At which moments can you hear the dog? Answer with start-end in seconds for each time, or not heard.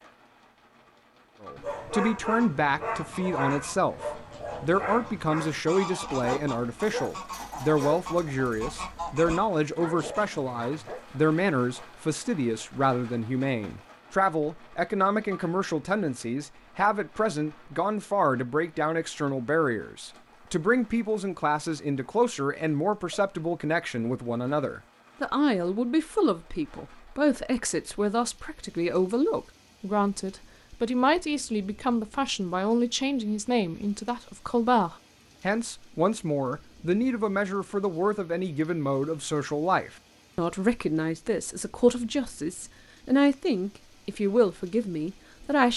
1.6-11.0.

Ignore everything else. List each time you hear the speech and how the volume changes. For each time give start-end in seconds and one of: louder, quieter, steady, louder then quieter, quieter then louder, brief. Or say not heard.
1.4-45.7 steady.